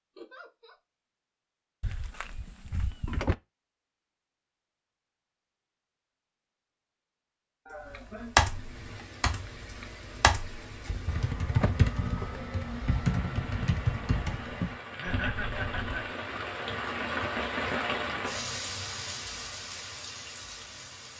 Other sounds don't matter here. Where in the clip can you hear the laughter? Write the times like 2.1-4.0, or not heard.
0.1-0.8, 7.7-8.3, 14.8-16.1.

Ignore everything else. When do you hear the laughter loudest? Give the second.
15 s.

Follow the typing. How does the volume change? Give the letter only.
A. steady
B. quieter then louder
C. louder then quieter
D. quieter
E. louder
D.